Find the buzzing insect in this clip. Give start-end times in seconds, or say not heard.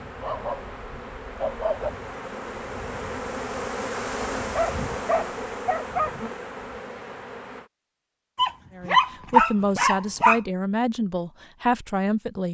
0.0-7.7.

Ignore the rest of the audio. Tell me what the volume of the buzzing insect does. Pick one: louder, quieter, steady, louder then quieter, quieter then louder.
louder then quieter.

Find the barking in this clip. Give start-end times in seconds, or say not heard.
0.2-1.9, 4.5-6.2, 8.3-10.4.